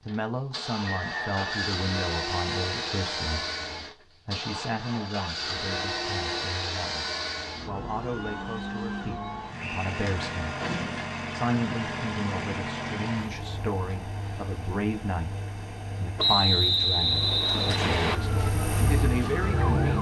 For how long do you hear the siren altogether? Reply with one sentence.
You can hear the siren for 2 seconds altogether.